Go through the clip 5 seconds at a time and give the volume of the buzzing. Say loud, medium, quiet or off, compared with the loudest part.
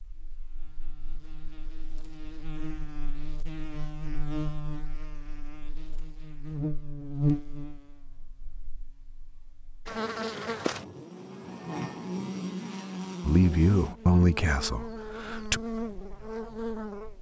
medium, loud, loud, loud.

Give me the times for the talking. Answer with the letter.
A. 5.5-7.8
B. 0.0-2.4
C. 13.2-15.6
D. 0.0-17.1
C.